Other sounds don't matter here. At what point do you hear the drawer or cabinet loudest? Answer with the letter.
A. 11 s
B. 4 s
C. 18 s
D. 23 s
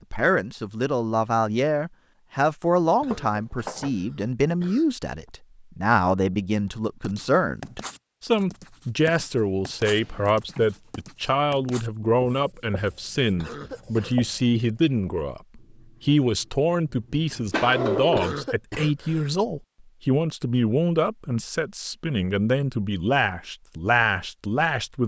C.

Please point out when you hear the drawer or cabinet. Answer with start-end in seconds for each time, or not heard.
3.1-3.9, 9.9-10.9, 17.5-18.3.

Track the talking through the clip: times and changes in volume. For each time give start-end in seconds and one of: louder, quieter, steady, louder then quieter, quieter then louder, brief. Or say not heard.
0.1-25.0 steady.